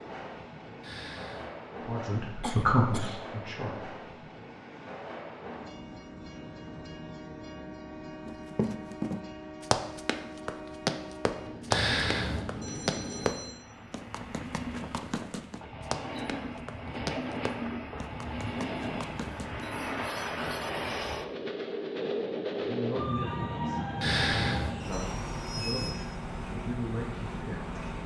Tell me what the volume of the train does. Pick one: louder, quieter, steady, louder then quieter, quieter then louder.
louder.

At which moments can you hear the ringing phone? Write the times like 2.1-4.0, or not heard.
0.8-1.5, 11.7-13.6, 24.0-25.1.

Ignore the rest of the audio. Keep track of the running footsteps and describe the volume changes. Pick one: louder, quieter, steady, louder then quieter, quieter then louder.
quieter.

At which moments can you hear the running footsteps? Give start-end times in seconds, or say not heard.
8.2-19.7.